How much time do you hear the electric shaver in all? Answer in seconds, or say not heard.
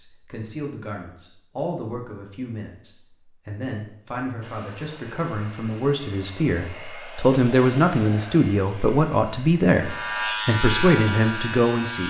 2 s.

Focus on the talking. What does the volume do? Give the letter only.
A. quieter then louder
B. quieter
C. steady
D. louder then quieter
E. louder
E.